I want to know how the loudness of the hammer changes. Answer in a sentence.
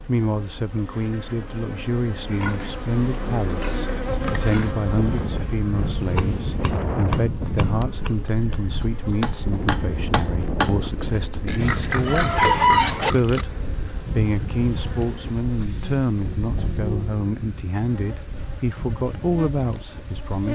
The loudness of the hammer goes down, then up.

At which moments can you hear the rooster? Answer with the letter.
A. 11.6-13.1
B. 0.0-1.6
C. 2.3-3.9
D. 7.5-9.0
A.